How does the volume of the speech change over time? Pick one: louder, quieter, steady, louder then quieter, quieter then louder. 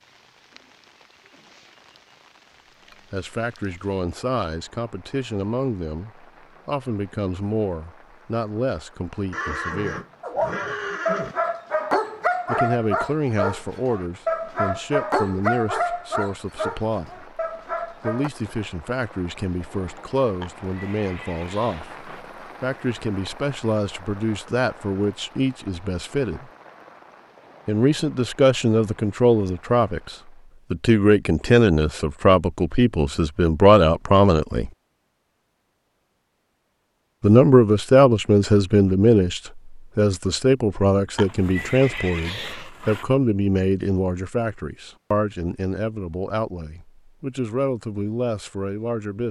louder then quieter.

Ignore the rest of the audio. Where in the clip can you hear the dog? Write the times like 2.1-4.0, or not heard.
10.2-18.3.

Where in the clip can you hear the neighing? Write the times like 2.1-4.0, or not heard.
9.3-11.3, 20.4-22.2, 41.1-43.0.